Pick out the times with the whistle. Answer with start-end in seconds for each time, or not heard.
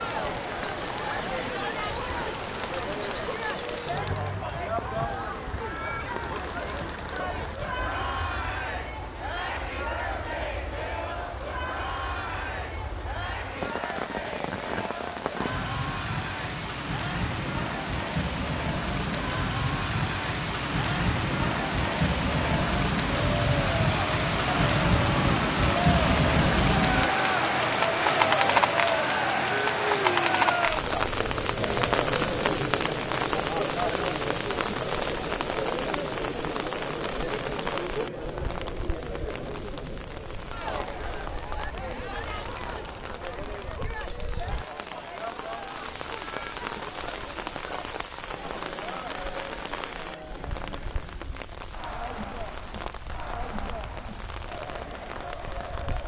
not heard.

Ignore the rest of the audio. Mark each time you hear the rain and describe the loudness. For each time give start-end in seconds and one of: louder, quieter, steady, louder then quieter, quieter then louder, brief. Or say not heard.
0.0-56.0 louder then quieter.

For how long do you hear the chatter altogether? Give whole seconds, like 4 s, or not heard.
56 s.